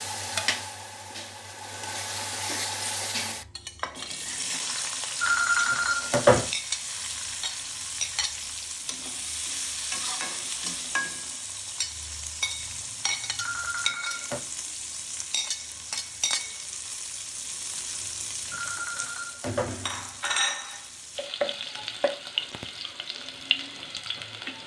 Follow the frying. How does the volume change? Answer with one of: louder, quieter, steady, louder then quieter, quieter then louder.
steady.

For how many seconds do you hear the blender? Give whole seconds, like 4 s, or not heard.
not heard.